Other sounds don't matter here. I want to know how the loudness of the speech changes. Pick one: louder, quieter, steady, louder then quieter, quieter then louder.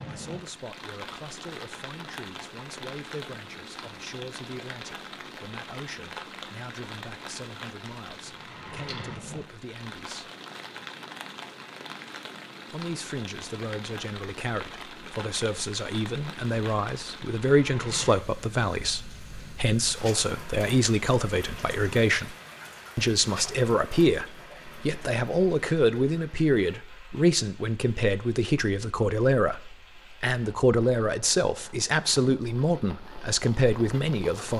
louder.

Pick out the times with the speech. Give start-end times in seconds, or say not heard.
0.1-10.3, 12.7-22.4, 22.9-34.5.